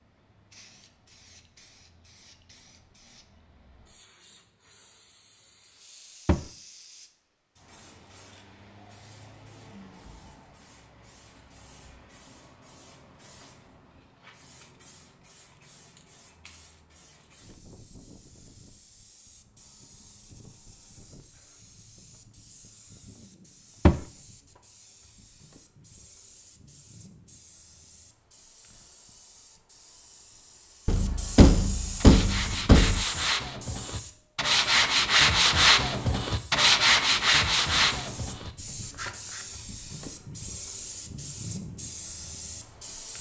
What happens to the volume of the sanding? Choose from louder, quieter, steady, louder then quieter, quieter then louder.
louder then quieter.